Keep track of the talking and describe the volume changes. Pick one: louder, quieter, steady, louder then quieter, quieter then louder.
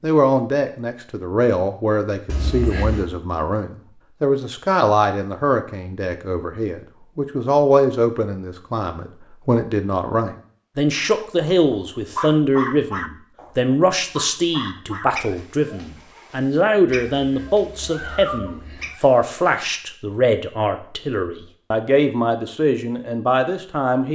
steady.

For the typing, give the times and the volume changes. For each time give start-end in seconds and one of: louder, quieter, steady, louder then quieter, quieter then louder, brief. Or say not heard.
not heard.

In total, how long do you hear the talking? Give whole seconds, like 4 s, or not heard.
24 s.